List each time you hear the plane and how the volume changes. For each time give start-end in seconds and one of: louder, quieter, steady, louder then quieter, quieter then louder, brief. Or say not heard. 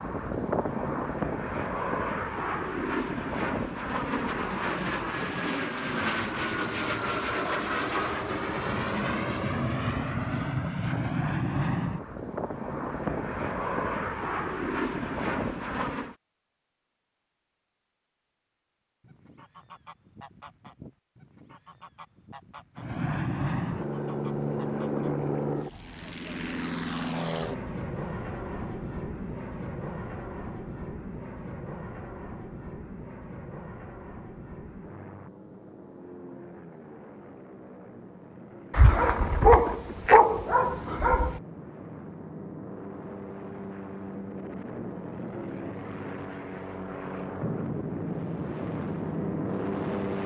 0.0-16.1 steady
22.8-50.2 quieter then louder.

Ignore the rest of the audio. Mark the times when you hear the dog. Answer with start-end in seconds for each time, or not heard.
38.7-41.4.